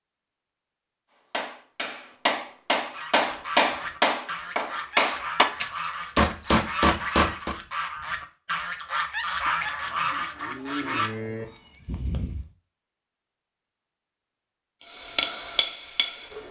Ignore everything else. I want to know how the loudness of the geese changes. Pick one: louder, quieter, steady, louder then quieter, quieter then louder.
louder.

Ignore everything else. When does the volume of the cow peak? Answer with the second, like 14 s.
11 s.